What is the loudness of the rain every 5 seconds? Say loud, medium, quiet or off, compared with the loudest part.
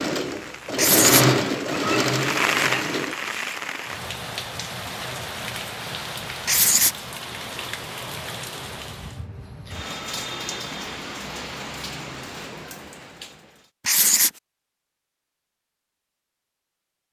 loud, medium, medium, off.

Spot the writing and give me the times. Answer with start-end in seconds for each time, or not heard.
0.8-1.2, 6.5-7.0, 13.8-14.3.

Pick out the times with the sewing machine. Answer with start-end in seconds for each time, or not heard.
0.0-3.1.